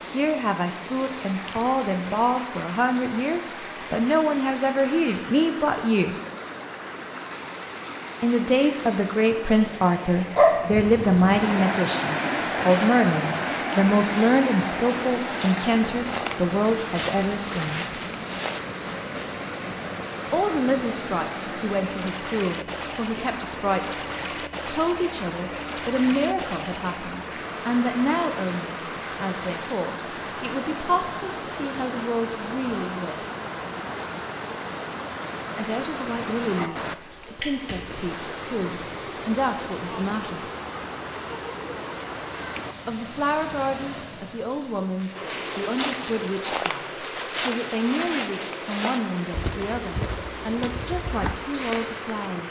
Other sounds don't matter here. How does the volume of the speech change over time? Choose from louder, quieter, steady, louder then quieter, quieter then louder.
quieter.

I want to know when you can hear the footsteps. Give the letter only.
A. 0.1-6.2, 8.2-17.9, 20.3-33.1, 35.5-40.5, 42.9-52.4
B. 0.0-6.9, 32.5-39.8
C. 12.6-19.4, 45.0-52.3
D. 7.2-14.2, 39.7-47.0
C.